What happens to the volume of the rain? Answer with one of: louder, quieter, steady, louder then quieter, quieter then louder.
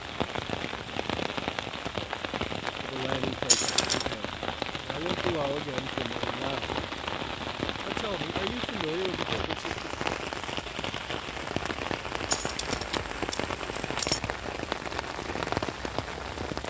steady.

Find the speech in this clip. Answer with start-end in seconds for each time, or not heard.
2.8-6.8, 7.8-9.9.